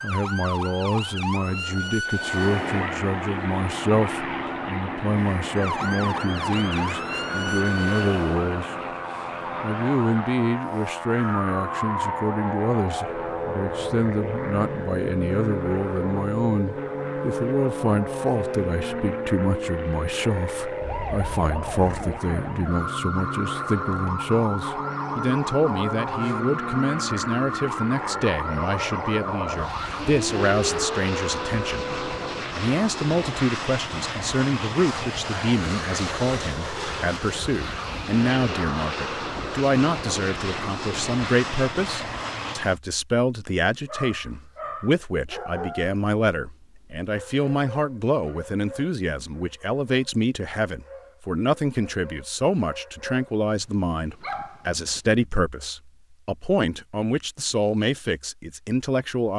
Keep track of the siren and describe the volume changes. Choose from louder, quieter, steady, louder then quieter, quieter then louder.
steady.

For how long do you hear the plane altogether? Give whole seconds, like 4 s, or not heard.
41 s.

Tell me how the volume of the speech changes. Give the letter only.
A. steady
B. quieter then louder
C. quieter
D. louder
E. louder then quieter
A.